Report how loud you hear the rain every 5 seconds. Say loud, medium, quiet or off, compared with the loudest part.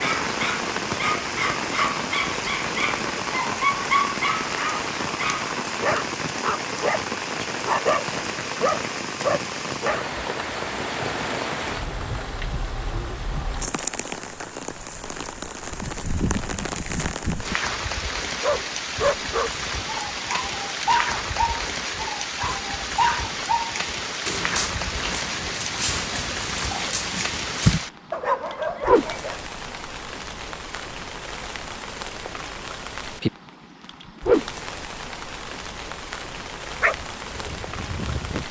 loud, loud, loud, loud, loud, loud, loud, medium.